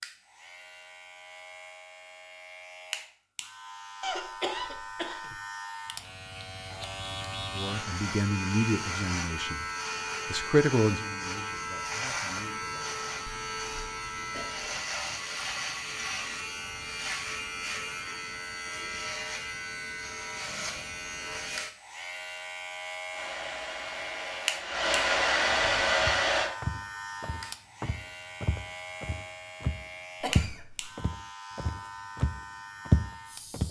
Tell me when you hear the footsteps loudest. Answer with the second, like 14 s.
33 s.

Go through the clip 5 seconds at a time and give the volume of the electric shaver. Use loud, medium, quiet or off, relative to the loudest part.
medium, loud, loud, loud, loud, medium, medium.